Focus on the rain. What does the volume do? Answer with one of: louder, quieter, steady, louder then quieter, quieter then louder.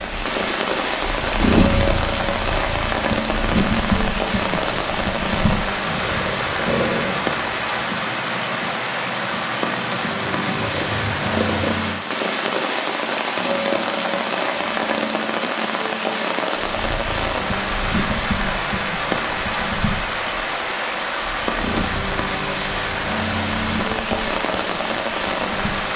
steady.